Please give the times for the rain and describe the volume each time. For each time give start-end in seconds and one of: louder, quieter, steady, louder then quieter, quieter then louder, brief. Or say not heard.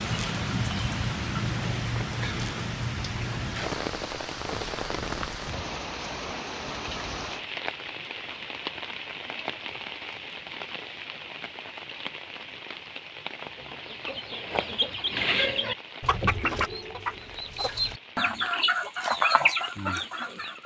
0.0-20.6 quieter.